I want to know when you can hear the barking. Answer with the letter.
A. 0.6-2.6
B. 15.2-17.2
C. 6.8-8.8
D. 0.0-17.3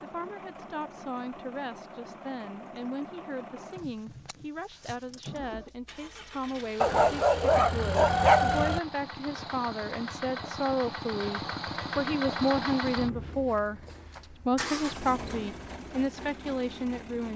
C.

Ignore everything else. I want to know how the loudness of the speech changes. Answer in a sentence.
The loudness of the speech goes up.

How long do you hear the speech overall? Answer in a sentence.
You can hear the speech for 17 seconds altogether.